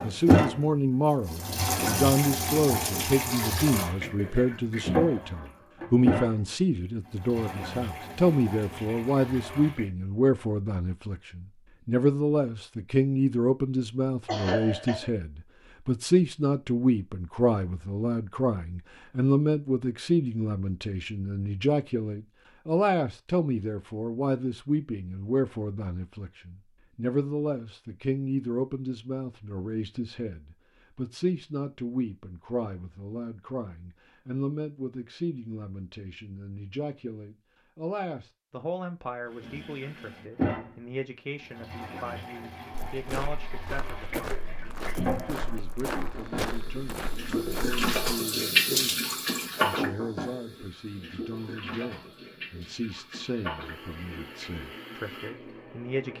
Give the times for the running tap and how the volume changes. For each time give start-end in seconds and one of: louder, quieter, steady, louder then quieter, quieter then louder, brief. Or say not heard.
0.0-9.9 quieter
39.2-56.1 louder then quieter.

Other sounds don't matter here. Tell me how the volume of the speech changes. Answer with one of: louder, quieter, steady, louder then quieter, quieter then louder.
quieter.